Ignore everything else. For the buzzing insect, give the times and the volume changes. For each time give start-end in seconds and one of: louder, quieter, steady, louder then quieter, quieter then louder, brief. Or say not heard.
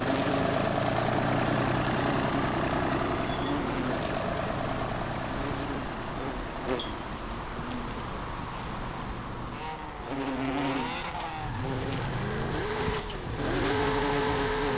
0.0-14.7 steady.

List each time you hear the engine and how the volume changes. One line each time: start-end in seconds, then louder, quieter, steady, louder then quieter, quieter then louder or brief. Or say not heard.
0.0-14.7 quieter then louder.